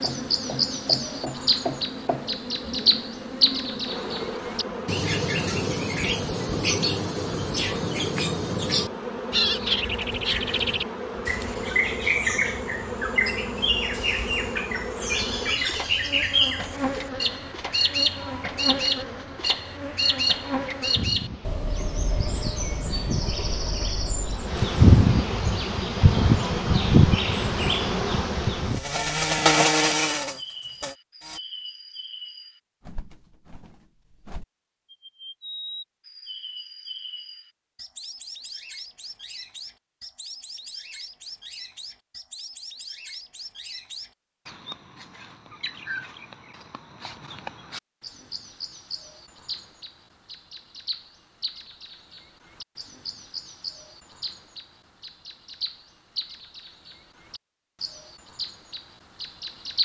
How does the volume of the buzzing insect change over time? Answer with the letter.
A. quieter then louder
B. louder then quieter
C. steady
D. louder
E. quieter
D.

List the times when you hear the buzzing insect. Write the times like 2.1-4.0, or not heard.
0.0-31.4.